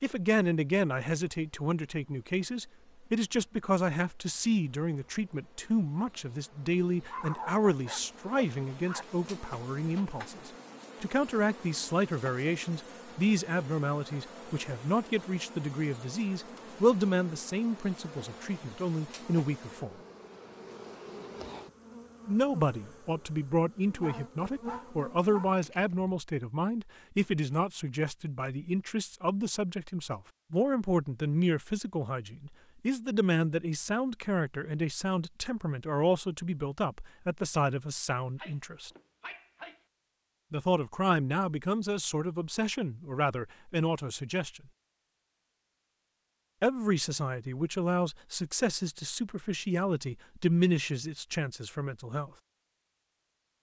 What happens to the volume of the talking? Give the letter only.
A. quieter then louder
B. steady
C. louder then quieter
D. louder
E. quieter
B.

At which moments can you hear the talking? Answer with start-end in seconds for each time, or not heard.
0.0-19.9, 22.2-38.9, 40.5-44.6, 46.6-52.3.